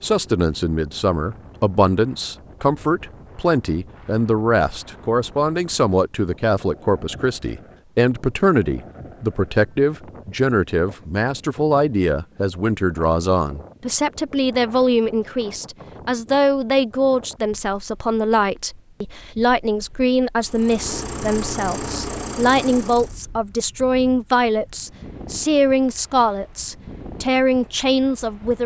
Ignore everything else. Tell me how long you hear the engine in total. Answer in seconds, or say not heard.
3 s.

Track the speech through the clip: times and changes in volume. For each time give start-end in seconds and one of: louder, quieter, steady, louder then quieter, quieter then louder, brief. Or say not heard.
0.0-28.6 steady.